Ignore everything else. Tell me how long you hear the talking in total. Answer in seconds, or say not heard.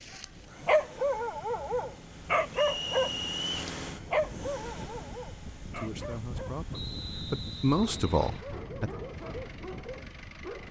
3 s.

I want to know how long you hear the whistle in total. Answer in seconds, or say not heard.
3 s.